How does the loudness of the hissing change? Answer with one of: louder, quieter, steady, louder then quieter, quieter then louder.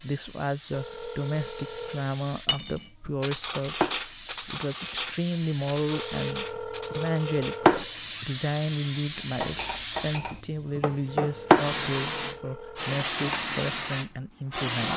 louder.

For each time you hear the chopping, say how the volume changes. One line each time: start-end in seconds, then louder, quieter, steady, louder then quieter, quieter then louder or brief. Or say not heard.
not heard.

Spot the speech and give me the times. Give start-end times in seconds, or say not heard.
0.0-14.9.